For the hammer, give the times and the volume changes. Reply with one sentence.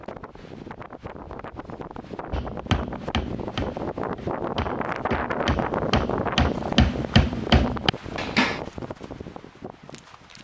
The hammer can be heard from 2.3 to 8.6 s, getting quieter then louder.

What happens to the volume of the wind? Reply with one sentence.
The loudness of the wind goes up, then down.